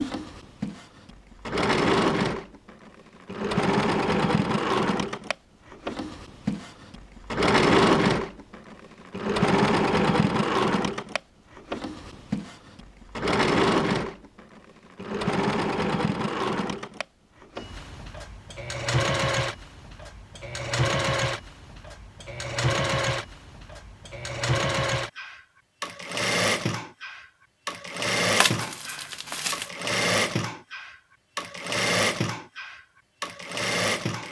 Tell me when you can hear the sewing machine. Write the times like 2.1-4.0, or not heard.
0.0-34.2.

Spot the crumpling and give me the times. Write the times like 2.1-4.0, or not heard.
28.4-29.7.